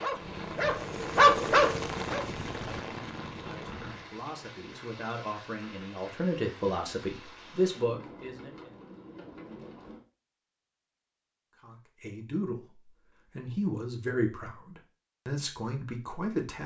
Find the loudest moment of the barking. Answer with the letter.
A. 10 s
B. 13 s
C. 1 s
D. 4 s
C.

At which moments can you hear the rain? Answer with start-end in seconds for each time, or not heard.
0.0-10.1.